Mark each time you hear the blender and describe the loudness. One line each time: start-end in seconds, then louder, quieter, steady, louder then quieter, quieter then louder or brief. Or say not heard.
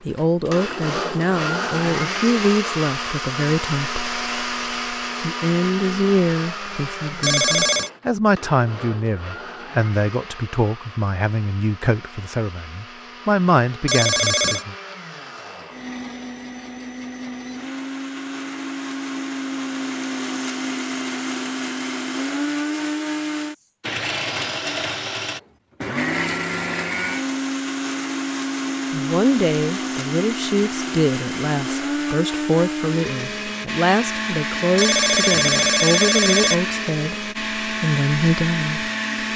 0.0-39.3 quieter then louder.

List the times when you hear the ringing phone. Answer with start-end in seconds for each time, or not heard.
7.2-7.9, 13.8-14.7, 34.8-36.5.